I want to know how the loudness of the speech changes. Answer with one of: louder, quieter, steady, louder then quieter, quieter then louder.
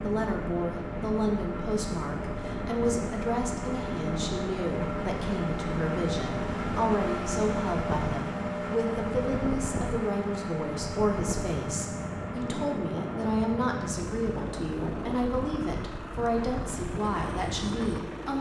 steady.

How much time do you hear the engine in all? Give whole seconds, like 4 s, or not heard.
18 s.